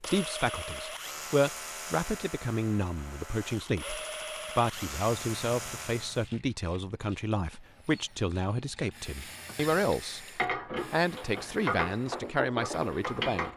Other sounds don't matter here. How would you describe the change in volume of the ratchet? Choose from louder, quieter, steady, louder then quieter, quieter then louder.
quieter then louder.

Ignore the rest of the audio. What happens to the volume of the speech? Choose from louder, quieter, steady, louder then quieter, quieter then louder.
steady.